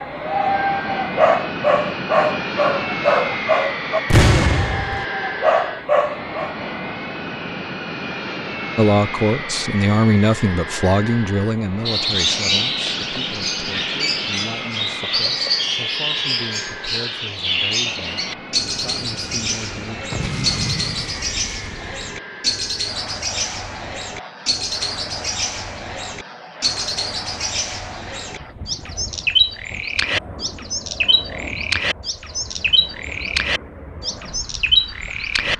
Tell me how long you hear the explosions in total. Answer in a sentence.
You can hear the explosions for 3 seconds altogether.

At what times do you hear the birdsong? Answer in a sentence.
You can hear the birdsong from 11.8 to 35.5 s.